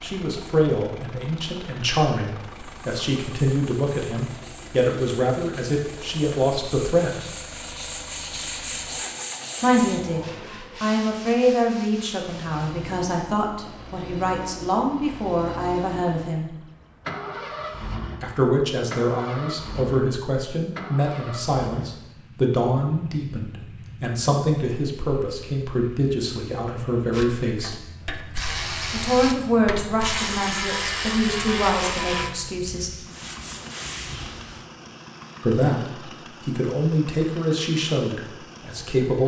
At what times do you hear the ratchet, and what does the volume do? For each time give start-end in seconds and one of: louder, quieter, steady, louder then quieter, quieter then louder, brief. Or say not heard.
27.1-32.3 louder.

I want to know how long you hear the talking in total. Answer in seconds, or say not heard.
32 s.